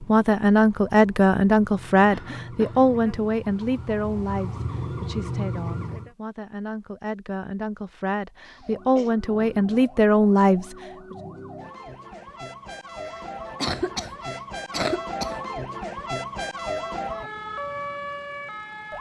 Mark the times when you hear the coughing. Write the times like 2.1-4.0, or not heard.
2.1-2.9, 8.4-9.2, 13.1-15.4.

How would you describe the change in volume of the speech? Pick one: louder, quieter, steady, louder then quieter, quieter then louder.
quieter then louder.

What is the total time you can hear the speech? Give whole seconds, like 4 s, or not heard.
11 s.